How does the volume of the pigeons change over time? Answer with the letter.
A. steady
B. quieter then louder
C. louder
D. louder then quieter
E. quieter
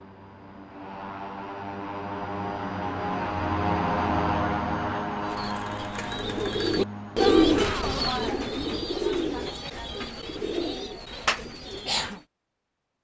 D.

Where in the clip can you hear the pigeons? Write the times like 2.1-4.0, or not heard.
5.2-12.2.